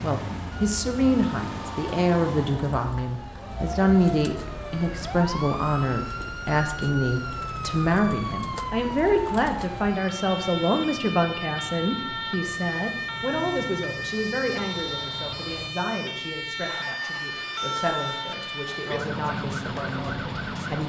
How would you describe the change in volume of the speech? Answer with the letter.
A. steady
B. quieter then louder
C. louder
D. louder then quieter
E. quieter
E.